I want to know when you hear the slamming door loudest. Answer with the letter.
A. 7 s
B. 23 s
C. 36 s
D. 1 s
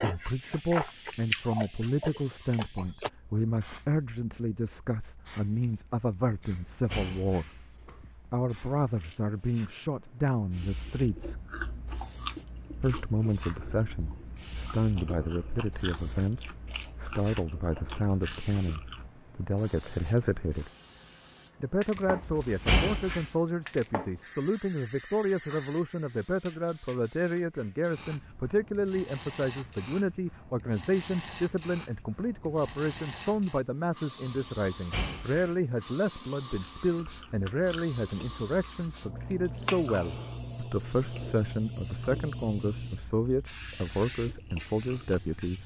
B.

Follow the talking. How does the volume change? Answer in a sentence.
The loudness of the talking stays about the same.